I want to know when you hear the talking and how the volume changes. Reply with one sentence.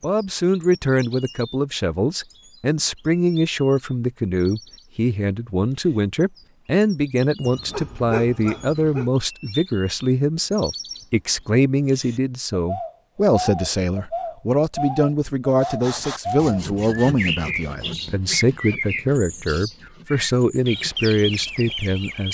You can hear the talking from 0.0 to 22.2 s, at a steady volume.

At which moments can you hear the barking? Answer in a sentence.
You can hear the barking from 7.5 to 9.1 s.